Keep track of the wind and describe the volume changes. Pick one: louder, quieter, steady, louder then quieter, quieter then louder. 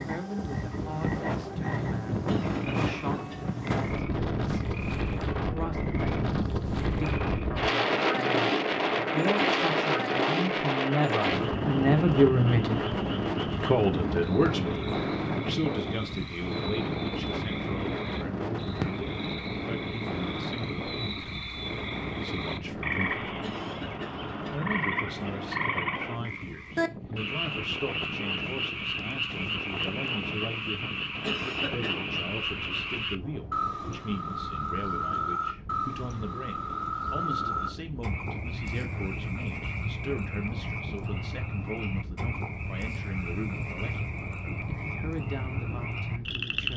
quieter.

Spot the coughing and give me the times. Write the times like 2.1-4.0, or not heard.
2.2-3.5, 23.4-24.6, 31.2-32.0.